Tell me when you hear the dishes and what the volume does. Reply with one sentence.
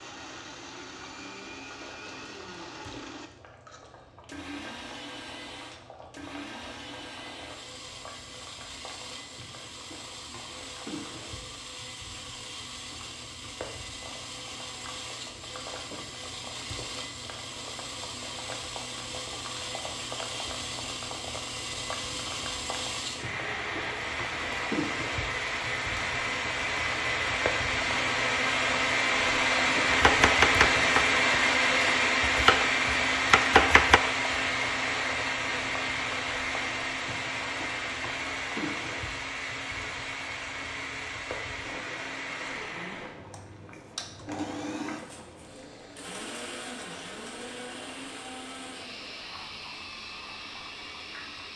You can't hear the dishes here.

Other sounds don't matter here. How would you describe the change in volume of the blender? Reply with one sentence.
The volume of the blender goes up, then down.